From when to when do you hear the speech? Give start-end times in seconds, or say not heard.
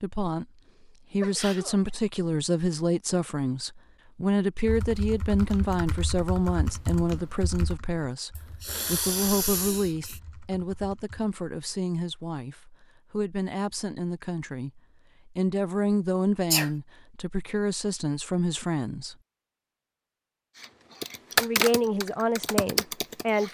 0.0-0.5, 1.1-19.1, 21.4-23.5.